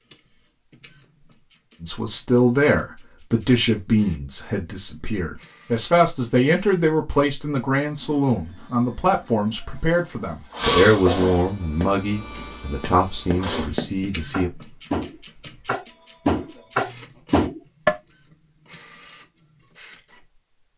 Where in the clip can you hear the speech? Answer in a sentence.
You can hear the speech from 1.8 to 14.5 s.